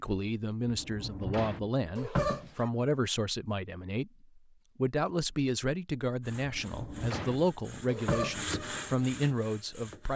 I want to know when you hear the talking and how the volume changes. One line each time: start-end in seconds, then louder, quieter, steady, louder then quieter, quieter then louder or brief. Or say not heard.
0.0-10.1 steady.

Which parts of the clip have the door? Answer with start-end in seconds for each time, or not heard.
0.7-1.7, 6.4-7.5.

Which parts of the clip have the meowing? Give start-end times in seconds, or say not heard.
1.9-2.7, 7.8-8.4.